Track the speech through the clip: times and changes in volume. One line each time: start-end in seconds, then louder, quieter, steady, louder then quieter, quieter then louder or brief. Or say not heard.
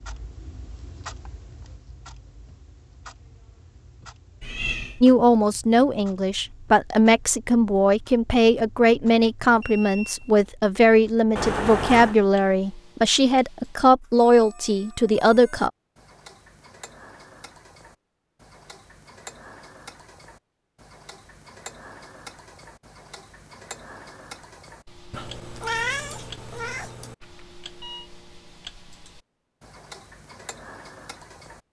5.0-15.7 steady.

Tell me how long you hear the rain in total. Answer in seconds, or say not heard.
not heard.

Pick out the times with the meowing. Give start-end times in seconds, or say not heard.
4.4-5.0, 11.3-12.2, 25.1-27.1.